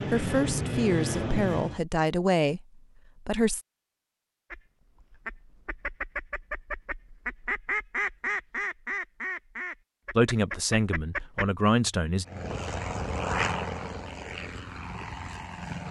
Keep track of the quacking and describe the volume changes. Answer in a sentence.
The volume of the quacking goes up, then down.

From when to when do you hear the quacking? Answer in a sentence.
The quacking can be heard from 4.5 to 11.5 s.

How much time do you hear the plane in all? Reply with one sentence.
The plane can be heard for 5 seconds in total.